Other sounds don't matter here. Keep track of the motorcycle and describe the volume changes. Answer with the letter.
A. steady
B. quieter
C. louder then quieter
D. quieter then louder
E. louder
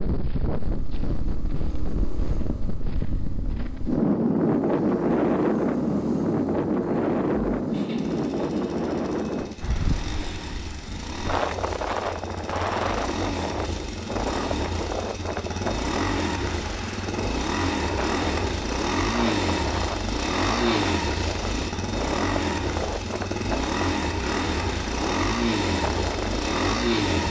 E.